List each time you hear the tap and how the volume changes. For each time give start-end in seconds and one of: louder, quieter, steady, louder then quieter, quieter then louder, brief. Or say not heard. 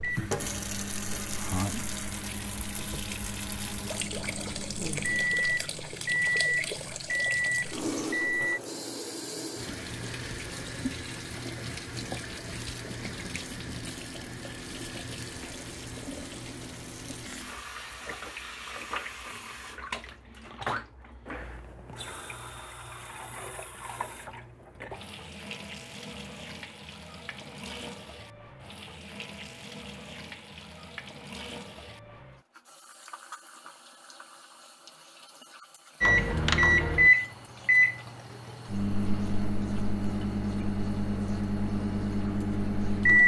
0.0-43.2 quieter.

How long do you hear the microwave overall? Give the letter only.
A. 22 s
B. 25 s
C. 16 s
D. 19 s
C.